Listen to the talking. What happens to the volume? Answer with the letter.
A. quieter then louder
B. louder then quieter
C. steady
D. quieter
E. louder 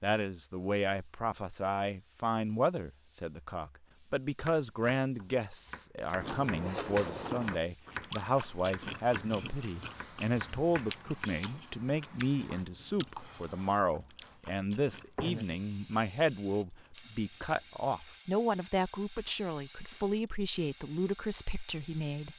C.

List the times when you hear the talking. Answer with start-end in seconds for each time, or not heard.
0.0-22.3.